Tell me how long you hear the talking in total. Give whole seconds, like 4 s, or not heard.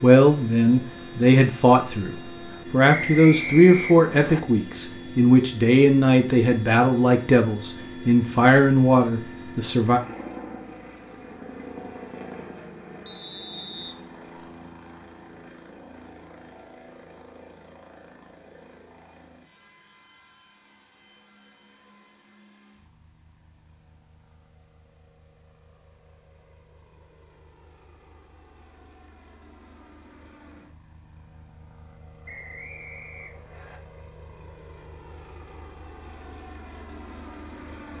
10 s.